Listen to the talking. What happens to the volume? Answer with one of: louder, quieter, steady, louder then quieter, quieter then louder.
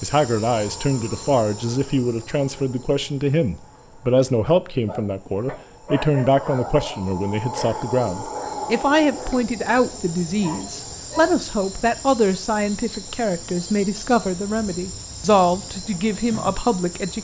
steady.